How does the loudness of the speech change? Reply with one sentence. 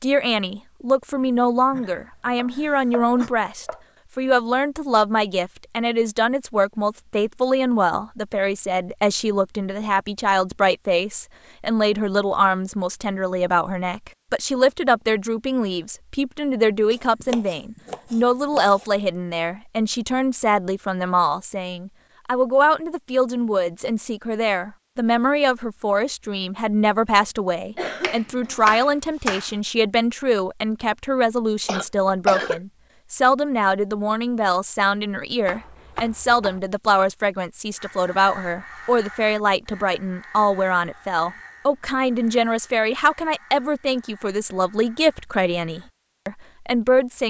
The loudness of the speech stays about the same.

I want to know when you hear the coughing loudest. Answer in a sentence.
The volume of the coughing peaks at 32 seconds.